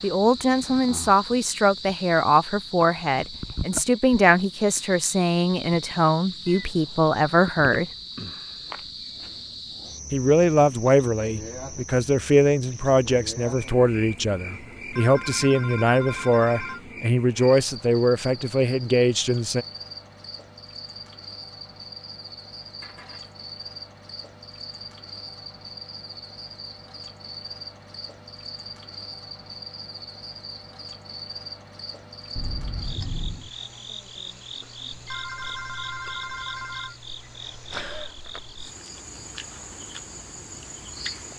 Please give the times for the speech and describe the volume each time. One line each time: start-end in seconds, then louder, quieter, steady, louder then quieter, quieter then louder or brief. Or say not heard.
0.0-7.8 steady
10.1-19.6 steady.